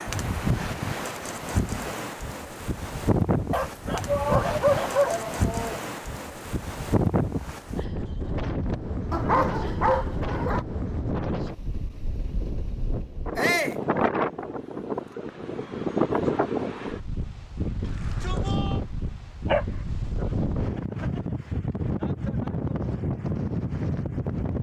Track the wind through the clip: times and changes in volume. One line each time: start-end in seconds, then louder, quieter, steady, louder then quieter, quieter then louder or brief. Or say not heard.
0.0-24.5 steady.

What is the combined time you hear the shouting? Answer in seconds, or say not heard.
3 s.